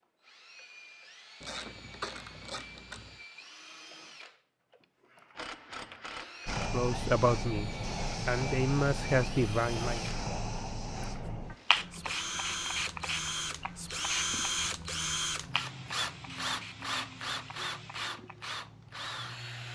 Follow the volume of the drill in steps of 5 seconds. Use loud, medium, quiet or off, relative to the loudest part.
quiet, medium, loud, loud.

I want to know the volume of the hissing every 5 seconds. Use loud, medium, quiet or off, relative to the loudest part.
off, loud, loud, medium.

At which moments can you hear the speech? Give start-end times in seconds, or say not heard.
6.7-10.1.